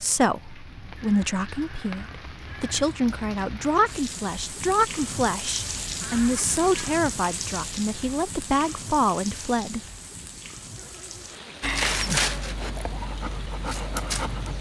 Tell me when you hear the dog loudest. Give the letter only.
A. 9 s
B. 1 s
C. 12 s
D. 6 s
C.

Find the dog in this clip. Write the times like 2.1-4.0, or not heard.
11.6-14.5.